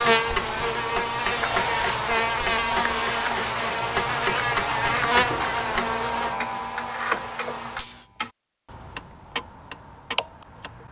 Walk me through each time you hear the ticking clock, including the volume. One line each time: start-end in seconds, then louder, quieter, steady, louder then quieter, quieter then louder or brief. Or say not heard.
0.0-10.8 steady.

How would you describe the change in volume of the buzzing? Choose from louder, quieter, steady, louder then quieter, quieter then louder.
quieter.